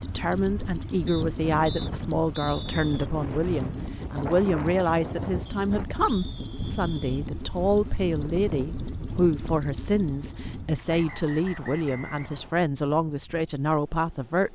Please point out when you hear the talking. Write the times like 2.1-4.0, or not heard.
0.0-14.4.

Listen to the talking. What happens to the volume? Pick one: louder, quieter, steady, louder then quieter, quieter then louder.
steady.